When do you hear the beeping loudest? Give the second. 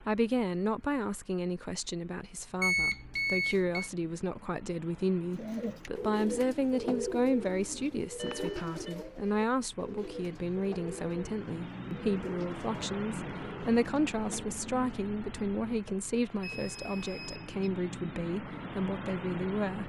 3 s.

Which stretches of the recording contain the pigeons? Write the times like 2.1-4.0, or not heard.
5.3-14.6.